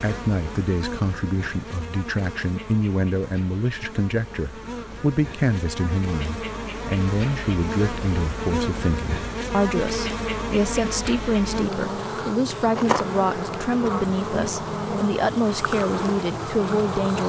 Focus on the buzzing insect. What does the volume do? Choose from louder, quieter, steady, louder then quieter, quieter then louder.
louder.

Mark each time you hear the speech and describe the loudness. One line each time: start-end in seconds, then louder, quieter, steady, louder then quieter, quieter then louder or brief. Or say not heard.
0.0-17.2 steady.